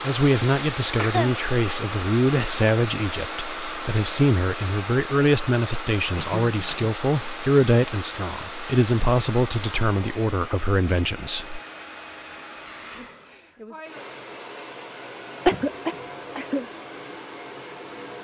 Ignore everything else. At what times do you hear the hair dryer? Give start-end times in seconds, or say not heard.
0.0-18.2.